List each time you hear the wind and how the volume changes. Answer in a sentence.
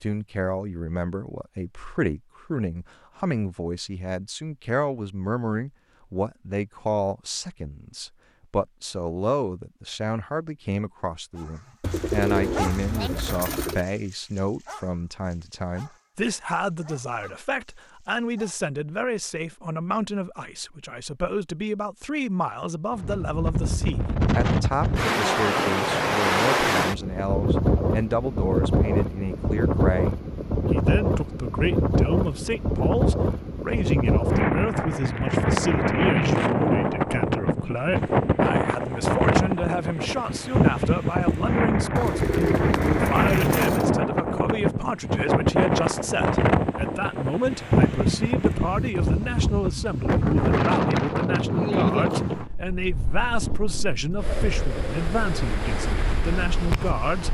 You can hear the wind from 22.9 to 57.2 s, at a steady volume.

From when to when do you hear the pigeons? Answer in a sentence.
The pigeons can be heard from 11.8 to 13.8 s and from 42.0 to 43.9 s.